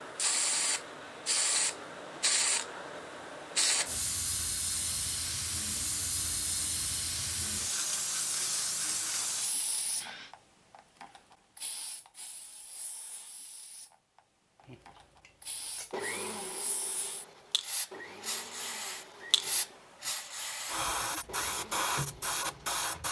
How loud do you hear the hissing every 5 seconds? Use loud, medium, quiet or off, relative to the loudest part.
loud, loud, quiet, medium, loud.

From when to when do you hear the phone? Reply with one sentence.
The phone can't be heard in this clip.